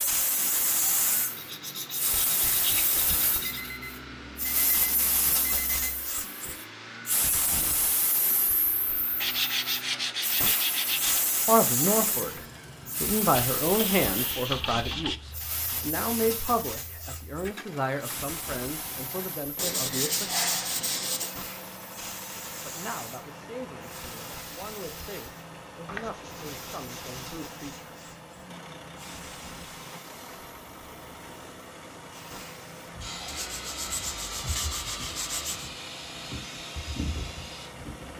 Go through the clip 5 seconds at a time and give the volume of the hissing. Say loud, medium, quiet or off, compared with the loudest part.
loud, loud, loud, medium, medium, quiet, medium, medium.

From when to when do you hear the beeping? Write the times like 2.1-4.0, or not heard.
3.4-6.1.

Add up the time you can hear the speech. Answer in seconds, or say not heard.
14 s.